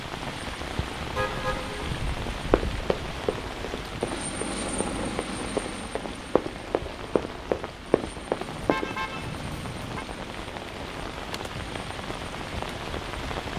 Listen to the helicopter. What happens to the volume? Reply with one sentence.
The volume of the helicopter goes up, then down.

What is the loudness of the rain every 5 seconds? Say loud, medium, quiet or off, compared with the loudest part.
loud, medium, loud.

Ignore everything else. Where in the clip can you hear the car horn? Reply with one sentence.
The car horn can be heard from 1.1 to 1.9 s and from 8.4 to 10.1 s.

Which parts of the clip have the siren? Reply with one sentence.
The siren can't be heard in this clip.